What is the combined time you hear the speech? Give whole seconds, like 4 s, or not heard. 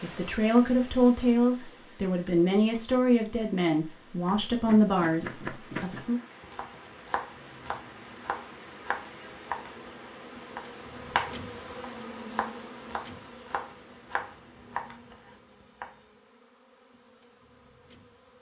6 s.